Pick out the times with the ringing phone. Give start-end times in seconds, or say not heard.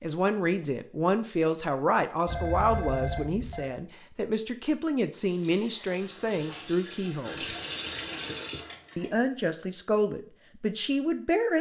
2.2-3.7.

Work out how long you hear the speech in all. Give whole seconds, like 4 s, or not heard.
10 s.